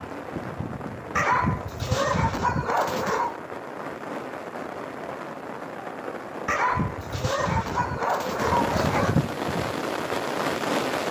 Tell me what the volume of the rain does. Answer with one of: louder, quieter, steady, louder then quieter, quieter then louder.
louder.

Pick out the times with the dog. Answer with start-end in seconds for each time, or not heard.
1.1-3.4, 6.5-9.2.